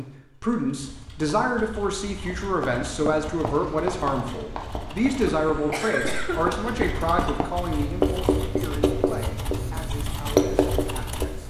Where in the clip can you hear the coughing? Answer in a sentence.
The coughing can be heard from 5.2 to 6.5 s.